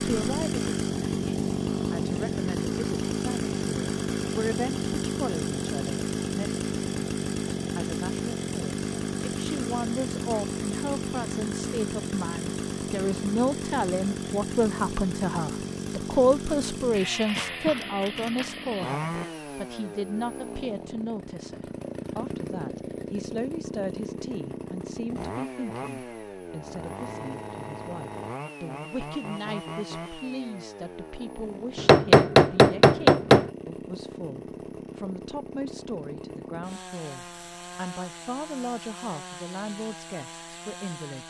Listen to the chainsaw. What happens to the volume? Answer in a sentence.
The volume of the chainsaw goes down.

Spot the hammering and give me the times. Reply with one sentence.
The hammering can be heard from 31.8 to 33.5 s.